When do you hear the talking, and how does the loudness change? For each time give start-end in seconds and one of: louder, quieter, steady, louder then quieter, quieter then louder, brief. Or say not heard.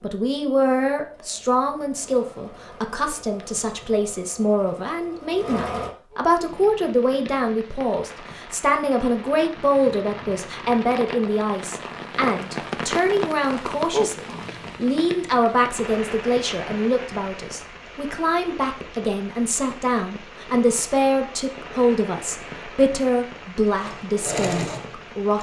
0.0-25.3 steady.